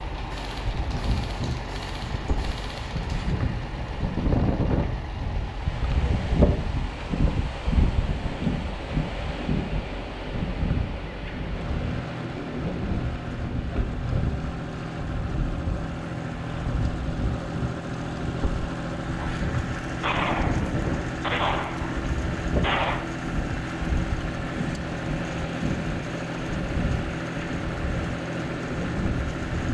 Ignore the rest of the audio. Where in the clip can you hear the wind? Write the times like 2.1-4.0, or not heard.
0.0-29.6.